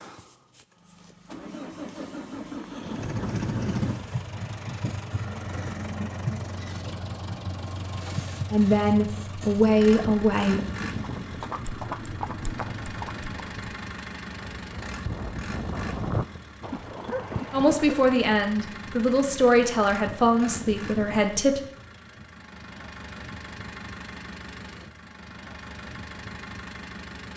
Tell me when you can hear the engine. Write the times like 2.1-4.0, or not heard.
0.0-27.3.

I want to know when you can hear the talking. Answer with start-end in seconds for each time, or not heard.
8.5-10.6, 17.5-21.6.